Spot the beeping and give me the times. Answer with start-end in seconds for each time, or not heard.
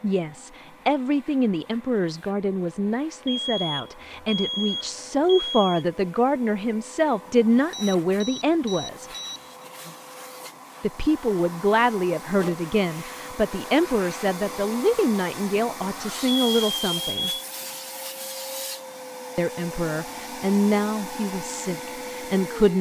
3.2-5.8, 7.7-9.7, 16.4-17.2.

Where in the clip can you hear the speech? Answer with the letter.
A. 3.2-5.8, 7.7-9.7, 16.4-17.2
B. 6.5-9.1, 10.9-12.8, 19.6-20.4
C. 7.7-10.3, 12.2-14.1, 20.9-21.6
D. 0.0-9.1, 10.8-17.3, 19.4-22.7
D.